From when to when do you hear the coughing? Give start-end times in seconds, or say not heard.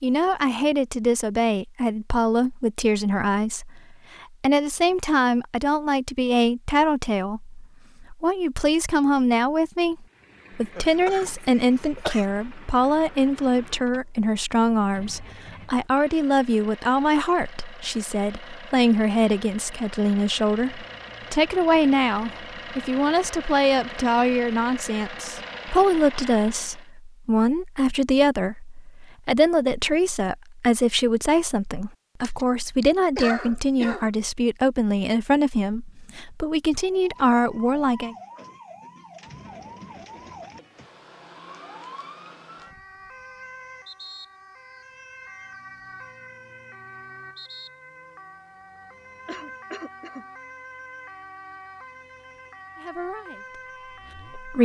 10.8-12.2, 32.2-34.1, 49.2-50.2.